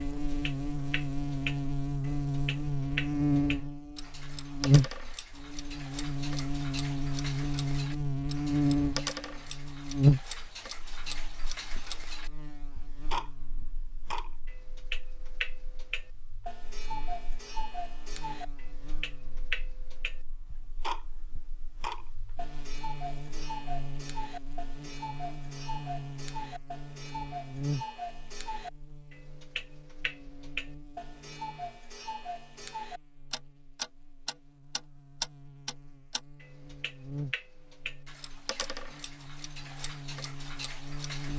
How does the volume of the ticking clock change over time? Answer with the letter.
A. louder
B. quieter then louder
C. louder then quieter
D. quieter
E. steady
E.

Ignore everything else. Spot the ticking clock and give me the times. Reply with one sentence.
You can hear the ticking clock from 0.0 to 41.3 s.